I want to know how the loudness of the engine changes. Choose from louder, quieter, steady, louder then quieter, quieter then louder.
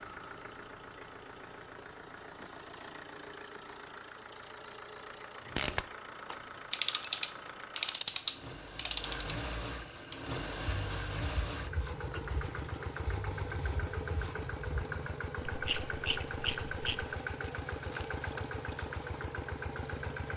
louder.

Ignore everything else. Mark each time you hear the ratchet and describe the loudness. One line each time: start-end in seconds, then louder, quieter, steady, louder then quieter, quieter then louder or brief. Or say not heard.
5.5-17.1 quieter then louder.